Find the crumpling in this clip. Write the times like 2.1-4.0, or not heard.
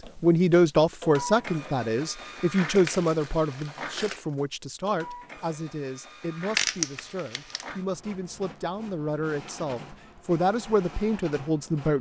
1.9-4.3, 6.5-7.7.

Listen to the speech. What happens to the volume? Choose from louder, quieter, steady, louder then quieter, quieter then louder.
quieter then louder.